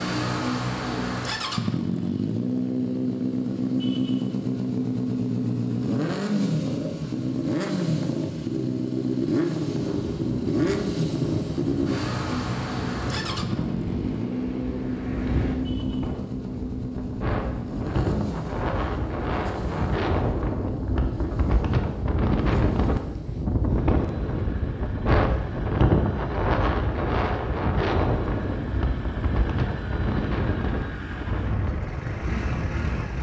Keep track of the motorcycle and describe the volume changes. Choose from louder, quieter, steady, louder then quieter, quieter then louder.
quieter.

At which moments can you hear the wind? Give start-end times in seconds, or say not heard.
9.7-33.1.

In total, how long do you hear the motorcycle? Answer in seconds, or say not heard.
33 s.